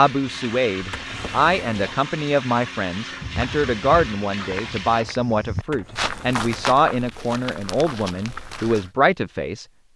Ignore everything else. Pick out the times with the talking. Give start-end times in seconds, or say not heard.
0.0-9.9.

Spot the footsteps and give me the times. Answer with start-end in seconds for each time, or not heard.
3.2-8.9.